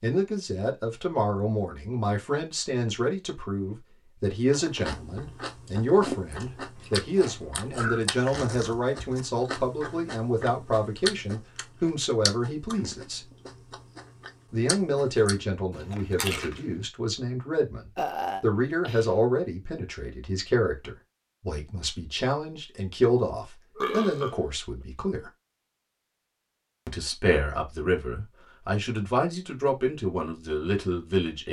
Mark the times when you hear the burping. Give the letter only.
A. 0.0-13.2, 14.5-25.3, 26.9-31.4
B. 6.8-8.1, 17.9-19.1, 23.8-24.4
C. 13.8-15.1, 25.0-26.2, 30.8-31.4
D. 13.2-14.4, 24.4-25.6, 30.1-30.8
B.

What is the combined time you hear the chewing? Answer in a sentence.
You can hear the chewing for 12 seconds altogether.